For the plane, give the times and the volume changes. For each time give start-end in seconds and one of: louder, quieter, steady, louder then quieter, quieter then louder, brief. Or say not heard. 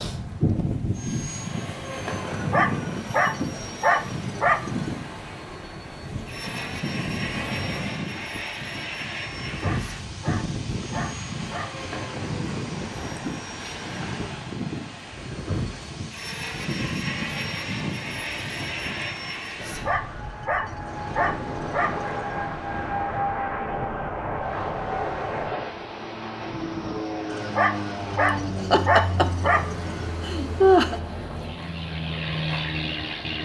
0.0-33.4 steady.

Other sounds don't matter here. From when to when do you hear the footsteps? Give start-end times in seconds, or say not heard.
not heard.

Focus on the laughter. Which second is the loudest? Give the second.
31 s.